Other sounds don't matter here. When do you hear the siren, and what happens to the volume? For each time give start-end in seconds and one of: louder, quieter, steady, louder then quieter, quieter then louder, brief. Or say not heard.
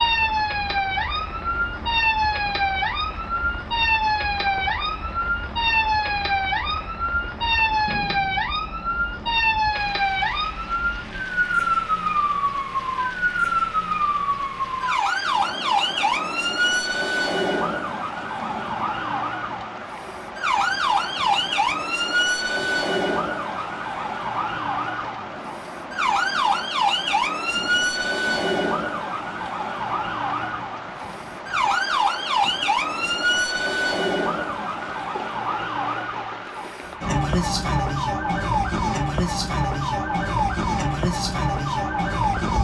0.0-42.5 steady.